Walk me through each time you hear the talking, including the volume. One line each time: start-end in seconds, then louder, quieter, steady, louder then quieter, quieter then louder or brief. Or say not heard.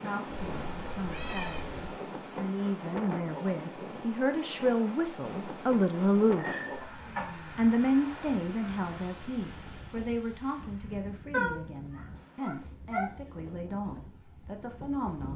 0.0-6.8 louder
7.5-15.3 quieter.